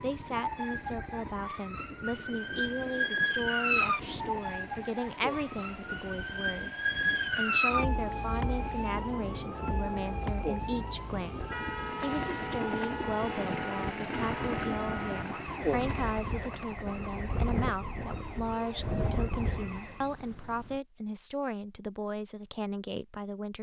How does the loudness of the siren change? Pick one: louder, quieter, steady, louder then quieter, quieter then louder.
quieter.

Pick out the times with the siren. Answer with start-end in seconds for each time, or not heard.
0.0-20.1.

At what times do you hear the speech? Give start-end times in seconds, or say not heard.
0.0-23.5.